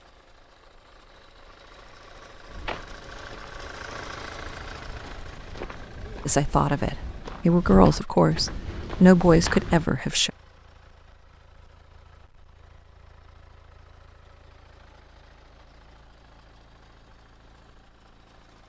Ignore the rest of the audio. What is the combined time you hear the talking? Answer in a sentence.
You can hear the talking for 4 seconds altogether.